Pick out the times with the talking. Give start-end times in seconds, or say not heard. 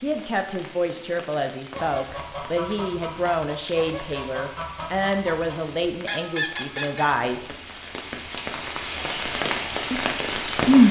0.0-7.5, 9.9-10.8.